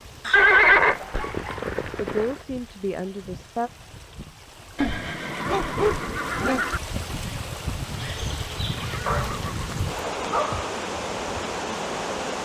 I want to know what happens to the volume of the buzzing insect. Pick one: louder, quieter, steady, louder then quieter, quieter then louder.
steady.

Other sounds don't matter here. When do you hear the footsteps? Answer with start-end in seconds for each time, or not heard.
not heard.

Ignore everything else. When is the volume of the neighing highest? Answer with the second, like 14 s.
1 s.